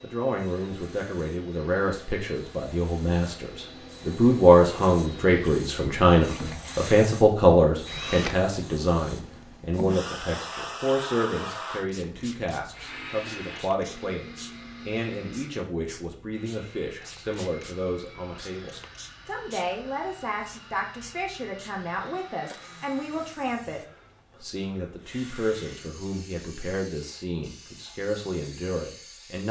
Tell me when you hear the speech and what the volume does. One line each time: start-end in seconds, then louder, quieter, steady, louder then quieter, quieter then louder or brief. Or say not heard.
0.0-29.4 quieter.